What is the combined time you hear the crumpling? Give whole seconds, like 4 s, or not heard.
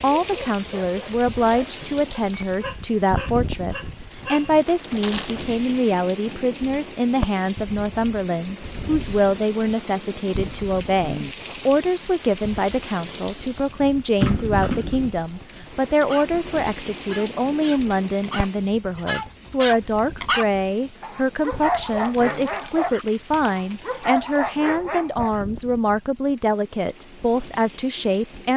4 s.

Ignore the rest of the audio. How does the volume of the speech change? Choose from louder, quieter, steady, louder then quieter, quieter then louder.
steady.